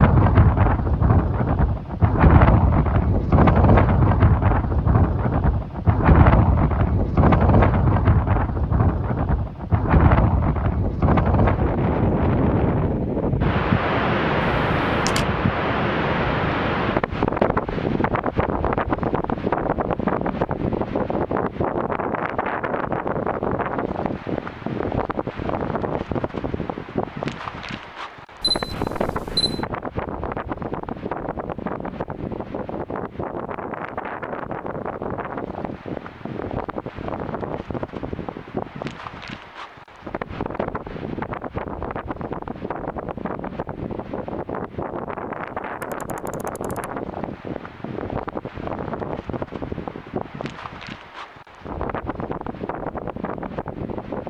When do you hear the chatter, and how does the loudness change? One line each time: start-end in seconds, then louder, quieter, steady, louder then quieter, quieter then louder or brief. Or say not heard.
not heard.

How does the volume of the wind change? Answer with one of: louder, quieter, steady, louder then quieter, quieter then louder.
quieter.